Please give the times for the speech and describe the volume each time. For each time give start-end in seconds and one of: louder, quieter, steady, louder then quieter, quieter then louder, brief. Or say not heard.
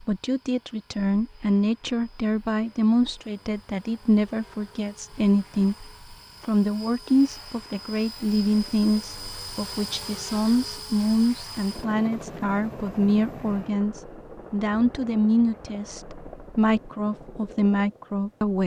0.0-18.6 steady.